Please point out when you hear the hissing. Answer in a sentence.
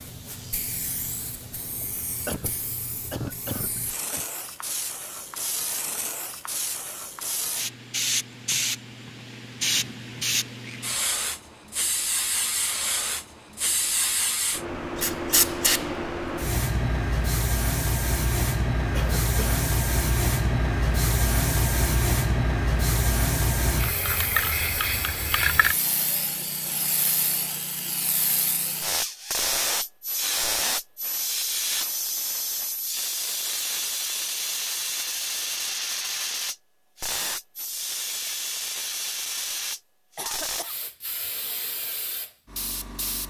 The hissing can be heard from 0.0 to 43.2 s.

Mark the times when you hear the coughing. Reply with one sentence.
You can hear the coughing from 2.2 to 4.2 s, from 18.9 to 19.6 s and from 40.1 to 40.8 s.